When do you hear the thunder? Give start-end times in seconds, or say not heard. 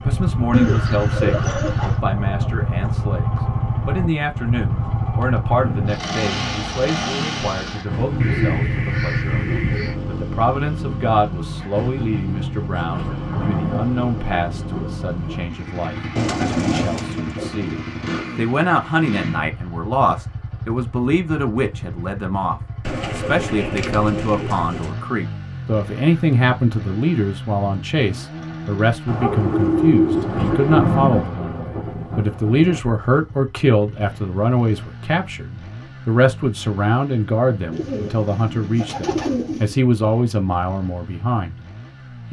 12.7-15.4, 30.1-32.8.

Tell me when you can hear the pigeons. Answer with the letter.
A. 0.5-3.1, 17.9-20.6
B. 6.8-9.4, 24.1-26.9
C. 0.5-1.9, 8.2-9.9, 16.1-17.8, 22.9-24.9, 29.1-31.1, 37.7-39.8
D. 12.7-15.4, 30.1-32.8
C.